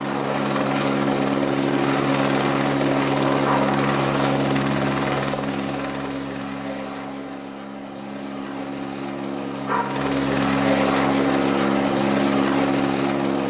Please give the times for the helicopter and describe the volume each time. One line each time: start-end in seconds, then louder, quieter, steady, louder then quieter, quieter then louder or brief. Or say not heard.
0.0-13.4 quieter then louder.